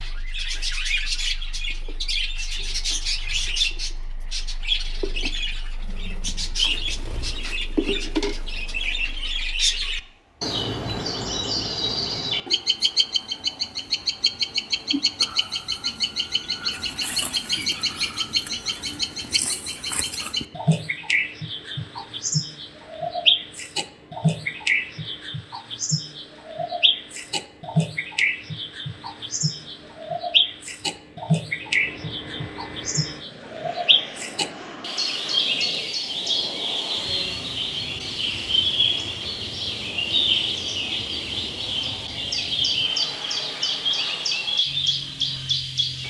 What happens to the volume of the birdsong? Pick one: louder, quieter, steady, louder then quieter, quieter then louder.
steady.